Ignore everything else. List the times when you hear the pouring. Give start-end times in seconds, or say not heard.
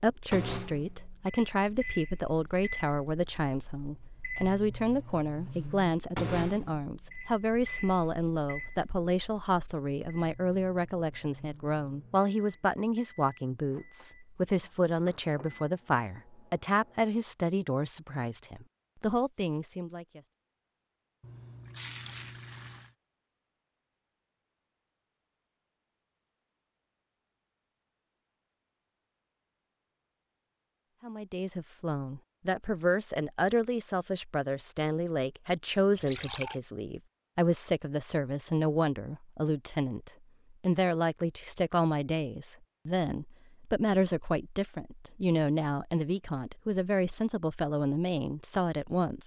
21.2-22.9, 36.0-36.6.